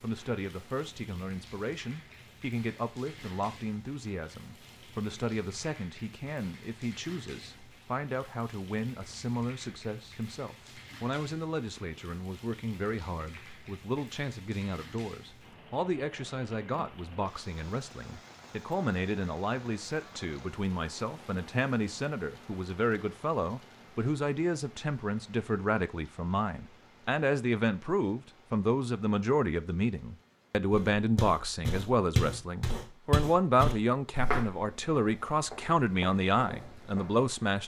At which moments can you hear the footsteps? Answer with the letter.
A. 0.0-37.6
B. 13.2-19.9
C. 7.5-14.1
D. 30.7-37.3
D.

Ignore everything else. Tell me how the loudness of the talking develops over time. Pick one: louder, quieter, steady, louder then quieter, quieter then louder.
louder.